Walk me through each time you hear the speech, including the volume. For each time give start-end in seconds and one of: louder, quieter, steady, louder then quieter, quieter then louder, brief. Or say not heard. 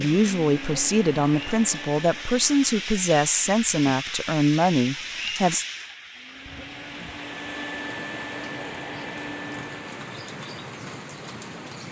0.0-5.7 steady.